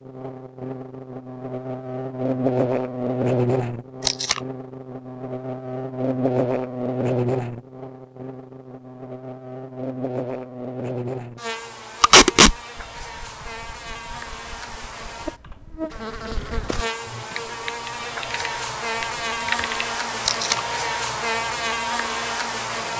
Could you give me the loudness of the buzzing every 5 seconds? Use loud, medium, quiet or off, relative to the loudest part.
loud, loud, medium, loud, loud.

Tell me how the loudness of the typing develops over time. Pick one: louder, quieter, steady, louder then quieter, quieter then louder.
louder.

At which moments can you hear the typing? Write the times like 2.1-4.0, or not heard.
12.8-19.9.